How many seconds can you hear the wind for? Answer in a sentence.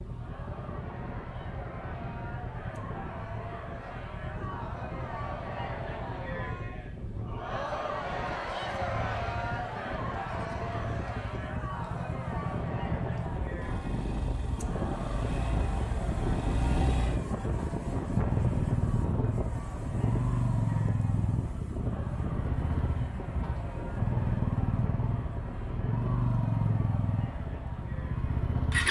The wind can be heard for 29 seconds in total.